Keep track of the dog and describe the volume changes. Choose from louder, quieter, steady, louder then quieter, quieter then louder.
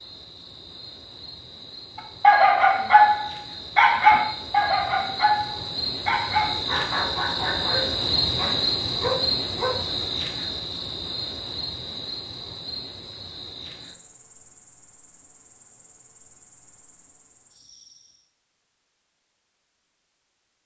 quieter.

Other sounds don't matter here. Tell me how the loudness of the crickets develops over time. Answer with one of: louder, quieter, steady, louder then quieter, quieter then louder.
louder then quieter.